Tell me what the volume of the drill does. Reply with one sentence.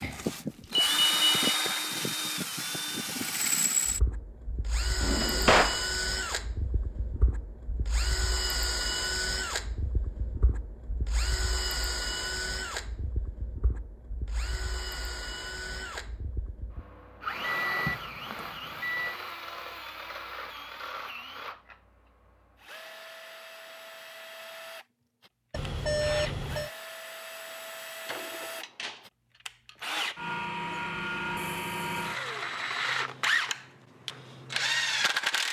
The volume of the drill goes down, then up.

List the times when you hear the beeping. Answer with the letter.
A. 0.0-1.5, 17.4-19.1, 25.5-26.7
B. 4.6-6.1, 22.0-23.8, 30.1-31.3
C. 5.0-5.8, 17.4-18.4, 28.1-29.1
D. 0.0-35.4
A.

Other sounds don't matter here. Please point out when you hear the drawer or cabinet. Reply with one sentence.
The drawer or cabinet can be heard from 5.0 to 5.8 s, from 17.4 to 18.4 s and from 28.1 to 29.1 s.